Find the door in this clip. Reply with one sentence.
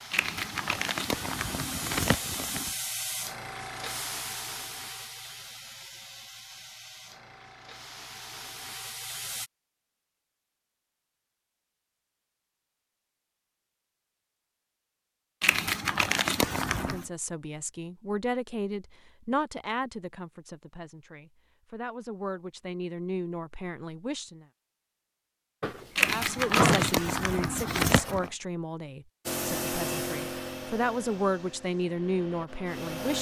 You can hear the door from 25.6 to 27.4 s.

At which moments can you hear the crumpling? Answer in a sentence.
You can hear the crumpling from 0.1 to 2.7 s, from 15.4 to 17.1 s and from 25.9 to 28.3 s.